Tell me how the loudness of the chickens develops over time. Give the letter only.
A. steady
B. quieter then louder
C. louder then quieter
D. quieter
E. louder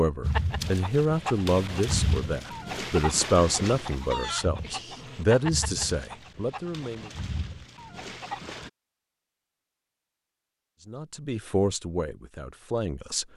D.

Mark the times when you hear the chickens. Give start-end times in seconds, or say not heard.
0.2-8.7.